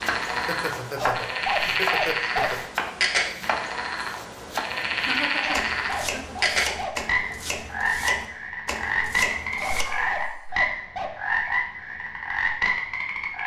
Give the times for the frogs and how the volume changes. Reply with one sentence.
You can hear the frogs from 0.0 to 13.4 s, at a steady volume.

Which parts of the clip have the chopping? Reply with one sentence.
You can hear the chopping from 0.0 to 9.8 s.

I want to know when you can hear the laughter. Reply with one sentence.
The laughter can be heard from 0.3 to 2.7 s, from 5.0 to 6.4 s and from 9.8 to 10.6 s.